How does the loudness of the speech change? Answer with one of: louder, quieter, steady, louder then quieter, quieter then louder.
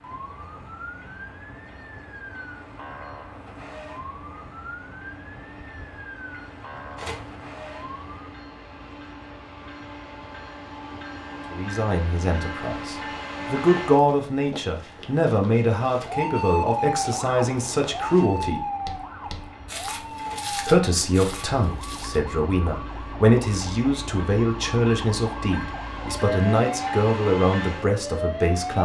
steady.